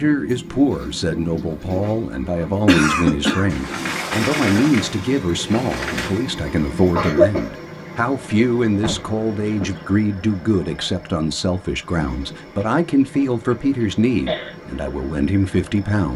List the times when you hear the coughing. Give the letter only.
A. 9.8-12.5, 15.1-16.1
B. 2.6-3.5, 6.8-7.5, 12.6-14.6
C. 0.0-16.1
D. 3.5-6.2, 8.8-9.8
B.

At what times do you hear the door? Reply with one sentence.
You can hear the door from 3.5 to 6.2 s and from 8.8 to 9.8 s.